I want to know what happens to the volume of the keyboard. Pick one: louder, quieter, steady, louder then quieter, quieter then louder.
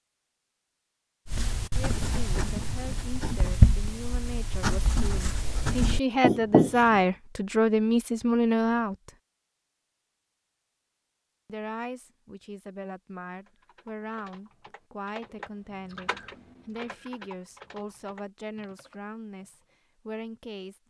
louder then quieter.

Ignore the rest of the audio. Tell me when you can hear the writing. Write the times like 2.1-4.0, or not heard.
1.2-7.0.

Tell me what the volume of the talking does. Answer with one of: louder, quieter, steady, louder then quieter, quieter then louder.
louder then quieter.